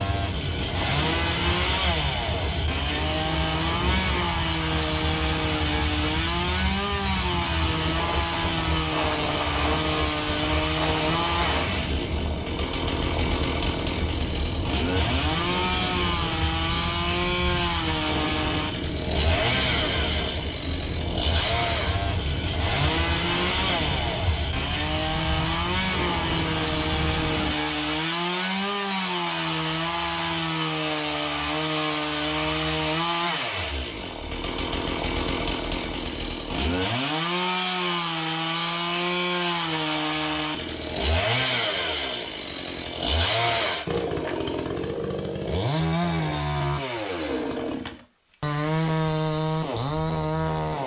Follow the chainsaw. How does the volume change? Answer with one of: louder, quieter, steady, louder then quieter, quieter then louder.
steady.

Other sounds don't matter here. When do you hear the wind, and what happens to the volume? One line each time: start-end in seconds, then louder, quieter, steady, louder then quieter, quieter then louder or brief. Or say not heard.
0.0-27.6 steady.